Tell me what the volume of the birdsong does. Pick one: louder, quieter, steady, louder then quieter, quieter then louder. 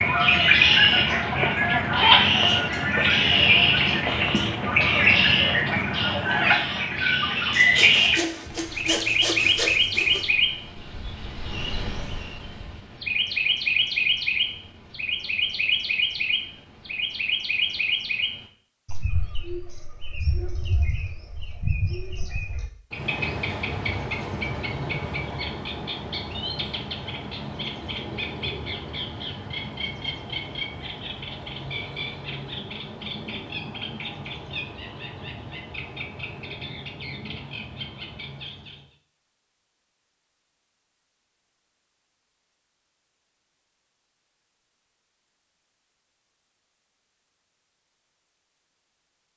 quieter.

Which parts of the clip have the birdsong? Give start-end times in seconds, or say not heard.
0.0-39.0.